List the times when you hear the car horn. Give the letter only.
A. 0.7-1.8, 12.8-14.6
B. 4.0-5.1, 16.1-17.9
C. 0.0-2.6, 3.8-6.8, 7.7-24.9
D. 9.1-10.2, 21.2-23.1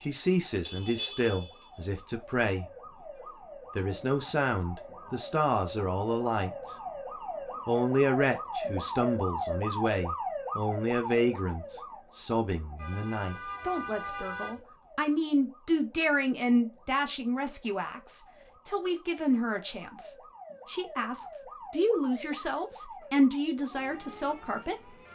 A.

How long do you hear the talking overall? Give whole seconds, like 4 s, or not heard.
23 s.